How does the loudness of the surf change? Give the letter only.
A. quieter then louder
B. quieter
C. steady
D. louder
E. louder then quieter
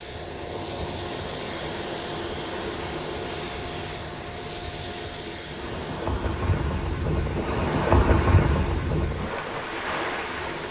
D.